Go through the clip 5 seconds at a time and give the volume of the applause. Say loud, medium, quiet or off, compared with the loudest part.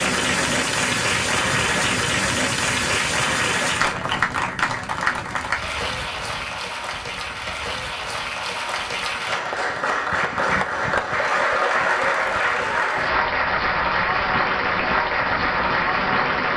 loud, medium, loud, loud.